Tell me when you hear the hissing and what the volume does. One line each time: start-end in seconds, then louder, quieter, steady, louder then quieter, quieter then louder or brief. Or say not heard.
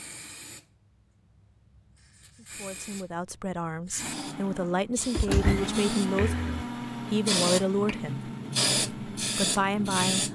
0.0-10.3 louder.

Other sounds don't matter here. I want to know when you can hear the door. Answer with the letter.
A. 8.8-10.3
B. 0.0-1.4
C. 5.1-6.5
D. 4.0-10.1
C.